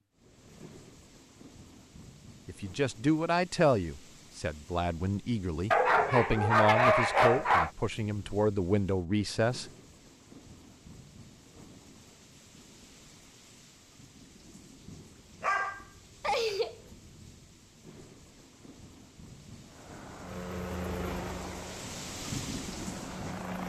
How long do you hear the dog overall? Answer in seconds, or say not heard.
3 s.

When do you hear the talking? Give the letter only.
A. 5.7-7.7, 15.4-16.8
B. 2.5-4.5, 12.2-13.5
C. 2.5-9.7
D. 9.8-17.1
C.